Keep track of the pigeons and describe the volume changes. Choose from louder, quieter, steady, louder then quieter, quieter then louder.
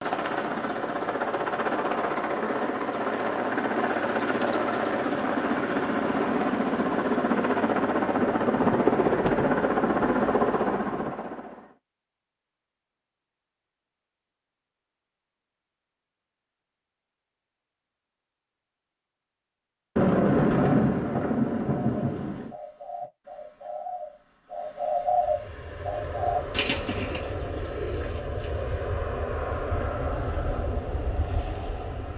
louder then quieter.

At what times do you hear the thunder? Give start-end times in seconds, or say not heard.
8.4-11.2, 19.9-22.6.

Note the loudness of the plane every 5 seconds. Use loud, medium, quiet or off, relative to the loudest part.
loud, loud, loud, off, off, medium, medium.